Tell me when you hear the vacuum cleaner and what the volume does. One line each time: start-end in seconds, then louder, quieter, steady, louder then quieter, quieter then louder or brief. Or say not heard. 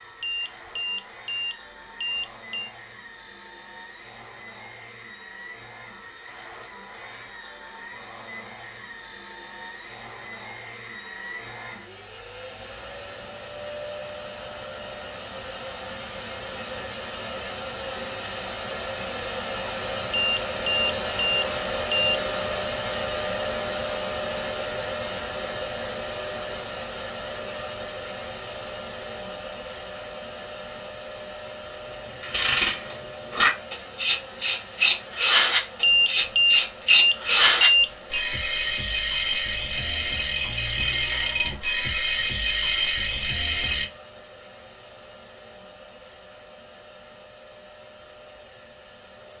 0.0-49.3 louder then quieter.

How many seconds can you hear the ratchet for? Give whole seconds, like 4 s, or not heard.
12 s.